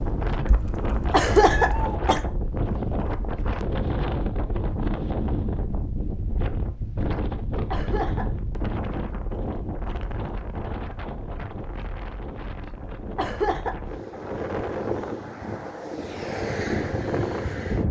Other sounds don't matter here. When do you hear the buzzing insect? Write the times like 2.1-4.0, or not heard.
not heard.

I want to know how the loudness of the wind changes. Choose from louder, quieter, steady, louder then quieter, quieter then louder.
quieter then louder.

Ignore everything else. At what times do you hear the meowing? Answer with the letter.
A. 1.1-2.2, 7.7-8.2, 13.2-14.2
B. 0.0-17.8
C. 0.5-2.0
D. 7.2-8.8
C.